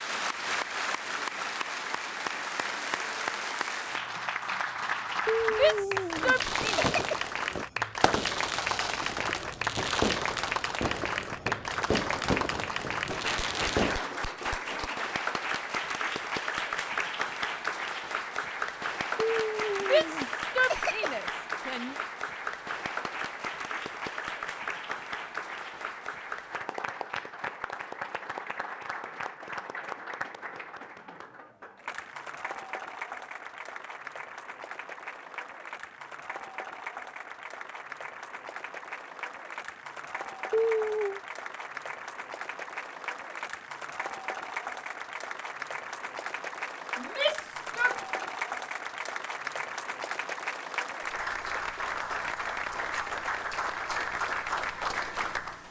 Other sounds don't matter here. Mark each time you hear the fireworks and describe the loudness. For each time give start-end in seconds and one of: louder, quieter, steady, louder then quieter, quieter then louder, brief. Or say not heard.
6.2-14.0 steady.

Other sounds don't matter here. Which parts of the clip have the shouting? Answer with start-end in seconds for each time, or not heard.
5.5-6.9, 19.8-21.9, 47.0-48.0.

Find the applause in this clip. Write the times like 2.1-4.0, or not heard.
0.0-55.6.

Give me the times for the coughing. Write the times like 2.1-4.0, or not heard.
5.2-7.2, 19.3-21.1, 40.5-41.2.